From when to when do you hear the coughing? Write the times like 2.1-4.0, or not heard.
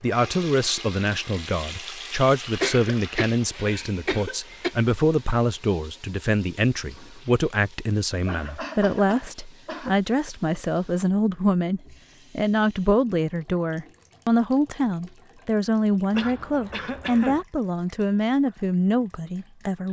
2.4-4.8, 8.2-10.0, 16.1-17.4.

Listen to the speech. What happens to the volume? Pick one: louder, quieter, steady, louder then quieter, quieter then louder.
steady.